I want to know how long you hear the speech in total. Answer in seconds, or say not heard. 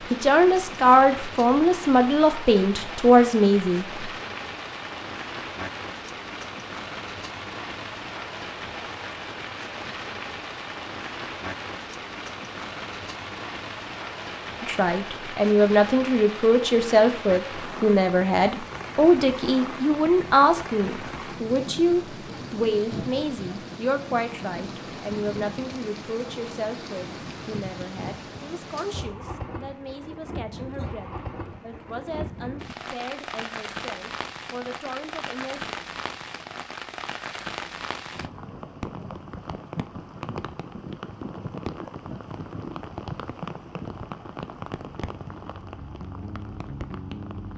25 s.